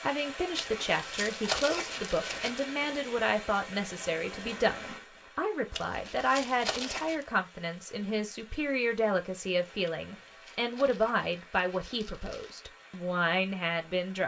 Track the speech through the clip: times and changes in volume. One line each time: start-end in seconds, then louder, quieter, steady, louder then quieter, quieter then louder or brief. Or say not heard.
0.0-14.2 steady.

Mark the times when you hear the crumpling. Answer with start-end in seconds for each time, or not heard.
0.6-2.6, 5.7-7.2, 9.8-12.6.